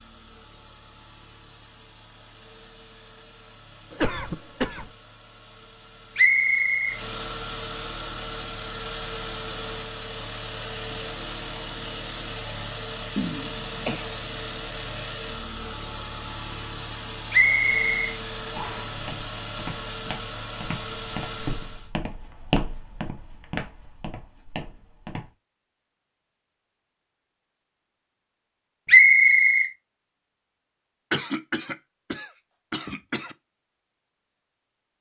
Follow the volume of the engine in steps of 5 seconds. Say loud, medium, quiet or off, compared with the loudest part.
quiet, loud, loud, loud, loud, off, off.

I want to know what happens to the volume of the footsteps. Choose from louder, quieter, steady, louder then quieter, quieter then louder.
louder then quieter.